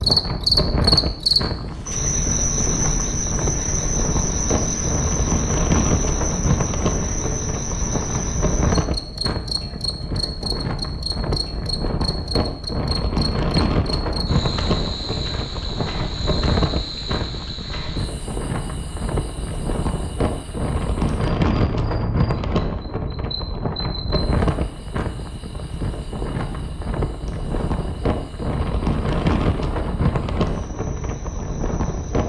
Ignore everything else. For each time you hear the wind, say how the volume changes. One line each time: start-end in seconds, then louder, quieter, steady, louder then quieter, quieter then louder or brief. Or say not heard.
0.0-32.2 steady.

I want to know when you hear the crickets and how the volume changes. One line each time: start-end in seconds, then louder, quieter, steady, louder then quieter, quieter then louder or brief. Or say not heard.
0.0-32.2 quieter.